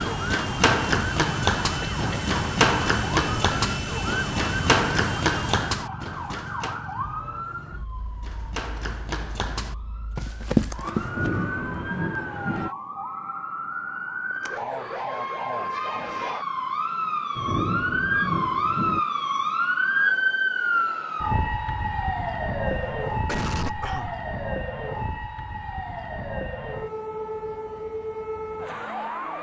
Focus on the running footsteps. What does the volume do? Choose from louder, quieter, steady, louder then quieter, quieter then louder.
quieter then louder.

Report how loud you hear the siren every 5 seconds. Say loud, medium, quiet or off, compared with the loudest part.
medium, medium, medium, loud, loud, medium.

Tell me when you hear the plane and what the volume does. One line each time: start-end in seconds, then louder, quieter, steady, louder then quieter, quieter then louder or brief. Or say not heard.
0.0-5.8 steady.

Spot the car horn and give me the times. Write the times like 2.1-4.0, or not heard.
not heard.